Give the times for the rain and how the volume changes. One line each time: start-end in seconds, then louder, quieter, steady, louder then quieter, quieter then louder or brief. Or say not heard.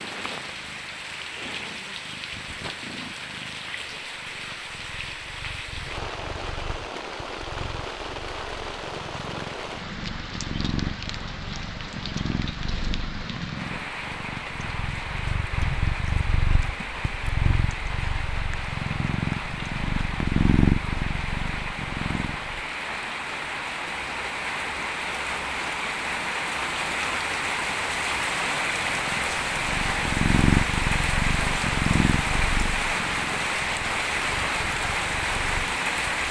0.0-36.2 louder.